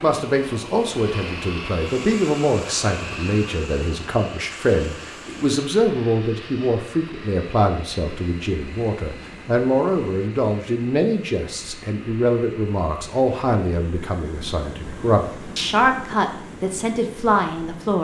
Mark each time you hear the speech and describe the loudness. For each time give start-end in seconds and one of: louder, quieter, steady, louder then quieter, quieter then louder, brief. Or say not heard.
0.0-17.9 steady.